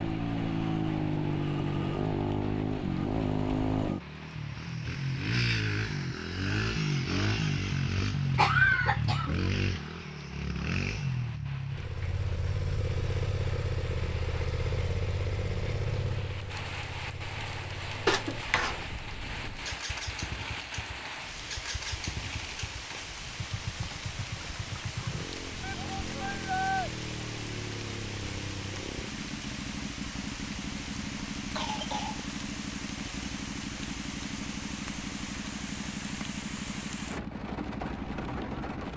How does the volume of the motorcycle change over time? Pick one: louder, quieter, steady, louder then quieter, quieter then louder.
quieter.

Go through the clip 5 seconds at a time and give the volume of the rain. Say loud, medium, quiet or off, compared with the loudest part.
medium, medium, medium, loud, loud, loud, loud, loud.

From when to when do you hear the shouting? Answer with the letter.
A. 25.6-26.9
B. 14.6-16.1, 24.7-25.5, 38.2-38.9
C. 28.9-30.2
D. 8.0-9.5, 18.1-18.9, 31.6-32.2
A.